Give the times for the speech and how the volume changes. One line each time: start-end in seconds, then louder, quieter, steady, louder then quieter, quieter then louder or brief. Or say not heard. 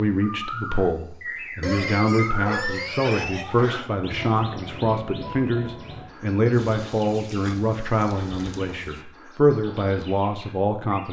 0.0-11.0 steady.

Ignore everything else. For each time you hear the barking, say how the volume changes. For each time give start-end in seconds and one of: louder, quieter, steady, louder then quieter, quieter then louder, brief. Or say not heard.
not heard.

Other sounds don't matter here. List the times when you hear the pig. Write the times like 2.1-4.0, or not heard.
1.6-3.9, 6.5-9.1.